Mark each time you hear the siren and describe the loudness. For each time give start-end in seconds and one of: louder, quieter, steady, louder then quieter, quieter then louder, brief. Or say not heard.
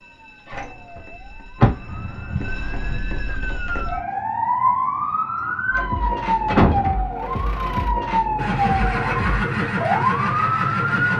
0.0-11.1 louder.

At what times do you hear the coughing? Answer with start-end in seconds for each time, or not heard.
not heard.